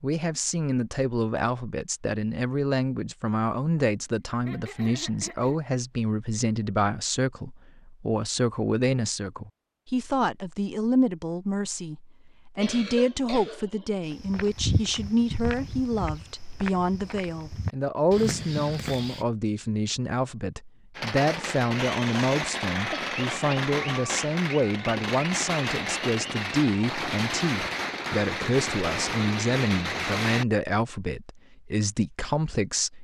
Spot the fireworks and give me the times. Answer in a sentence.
You can hear the fireworks from 20.9 to 30.4 s.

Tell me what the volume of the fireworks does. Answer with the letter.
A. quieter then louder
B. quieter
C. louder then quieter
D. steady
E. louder
D.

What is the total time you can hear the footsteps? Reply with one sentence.
The footsteps can be heard for 5 seconds in total.